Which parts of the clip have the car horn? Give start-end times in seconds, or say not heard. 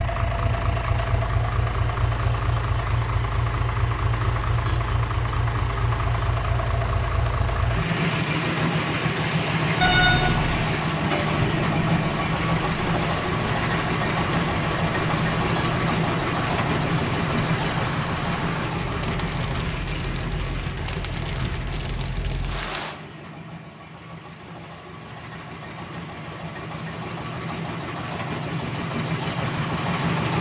9.8-10.7.